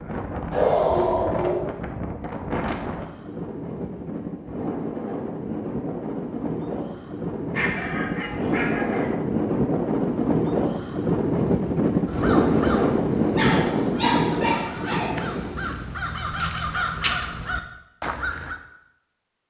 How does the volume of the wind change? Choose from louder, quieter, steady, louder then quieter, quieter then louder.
louder.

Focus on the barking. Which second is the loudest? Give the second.
1 s.